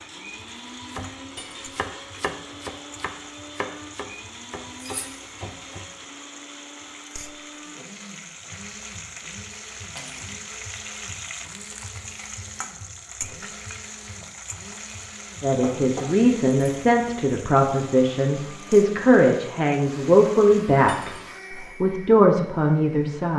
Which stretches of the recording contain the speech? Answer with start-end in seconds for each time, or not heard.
15.4-23.3.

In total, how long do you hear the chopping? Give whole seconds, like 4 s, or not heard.
5 s.